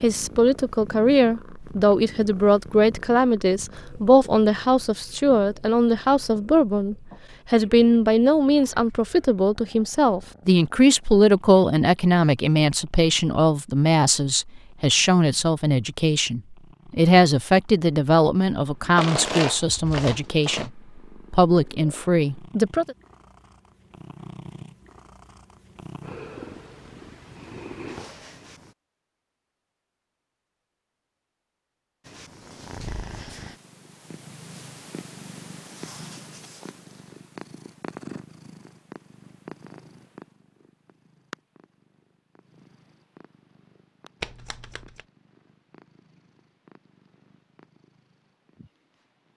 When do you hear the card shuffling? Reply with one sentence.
The card shuffling can be heard from 18.9 to 20.7 s and from 44.2 to 45.0 s.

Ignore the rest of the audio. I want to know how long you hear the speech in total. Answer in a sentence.
The speech can be heard for 23 seconds in total.